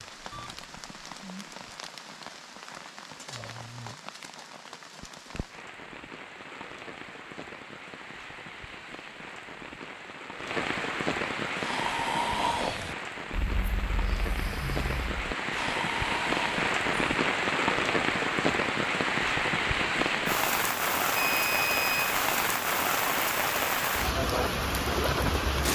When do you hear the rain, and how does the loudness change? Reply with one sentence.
The rain can be heard from 0.0 to 25.7 s, getting louder.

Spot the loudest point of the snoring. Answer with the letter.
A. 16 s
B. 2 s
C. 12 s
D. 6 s
C.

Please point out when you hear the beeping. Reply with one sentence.
The beeping can be heard from 0.3 to 0.9 s and from 21.1 to 22.1 s.